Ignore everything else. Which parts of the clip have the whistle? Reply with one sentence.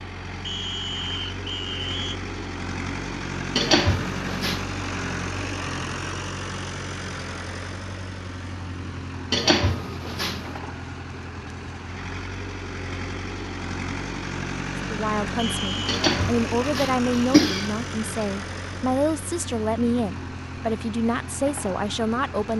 You can hear the whistle from 0.5 to 2.2 s and from 15.3 to 15.9 s.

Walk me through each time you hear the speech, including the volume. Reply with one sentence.
You can hear the speech from 14.9 to 22.5 s, at a steady volume.